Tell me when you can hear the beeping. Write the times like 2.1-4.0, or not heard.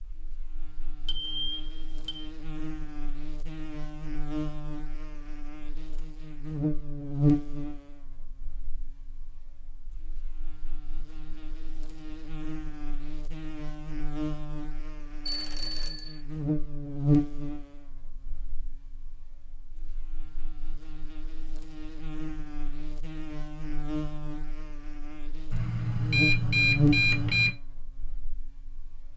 1.1-2.3, 15.2-16.2, 25.5-27.5.